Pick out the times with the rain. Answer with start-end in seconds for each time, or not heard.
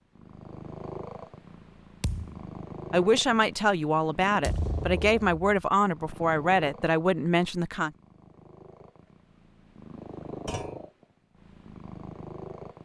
not heard.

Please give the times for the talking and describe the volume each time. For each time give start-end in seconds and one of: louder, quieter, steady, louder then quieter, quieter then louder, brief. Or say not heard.
2.9-7.9 steady.